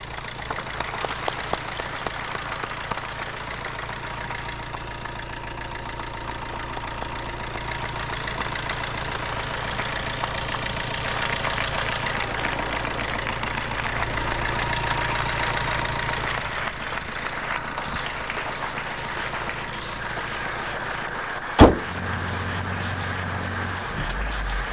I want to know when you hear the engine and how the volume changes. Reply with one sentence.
You can hear the engine from 0.0 to 24.6 s, getting louder.